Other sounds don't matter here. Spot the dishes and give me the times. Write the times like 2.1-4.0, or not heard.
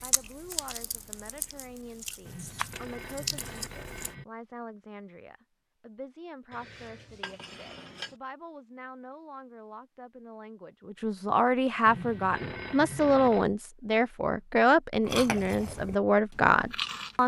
6.5-8.2.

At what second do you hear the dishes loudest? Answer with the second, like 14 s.
8 s.